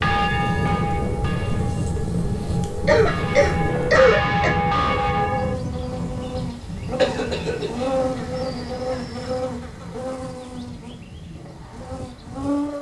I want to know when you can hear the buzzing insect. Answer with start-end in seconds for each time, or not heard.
0.0-12.7.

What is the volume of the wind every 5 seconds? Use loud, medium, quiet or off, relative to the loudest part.
loud, medium, quiet.